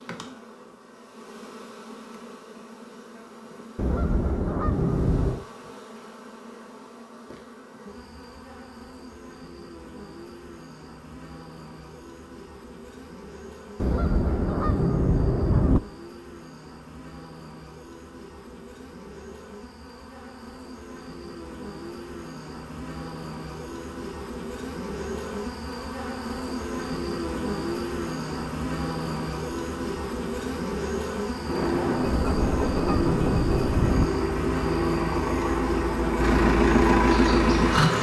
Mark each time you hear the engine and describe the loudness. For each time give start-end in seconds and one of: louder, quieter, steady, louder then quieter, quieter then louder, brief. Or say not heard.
31.4-37.9 louder.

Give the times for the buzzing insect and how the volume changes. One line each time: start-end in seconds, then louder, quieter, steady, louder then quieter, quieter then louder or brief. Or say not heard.
0.0-37.9 louder.